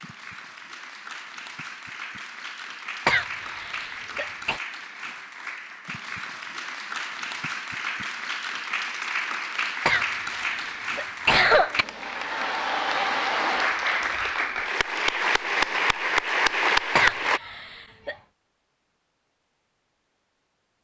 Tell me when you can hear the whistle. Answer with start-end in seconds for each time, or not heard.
not heard.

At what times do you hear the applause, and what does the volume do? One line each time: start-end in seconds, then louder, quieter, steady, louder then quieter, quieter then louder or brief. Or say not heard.
0.0-17.4 louder.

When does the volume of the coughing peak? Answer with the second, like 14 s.
11 s.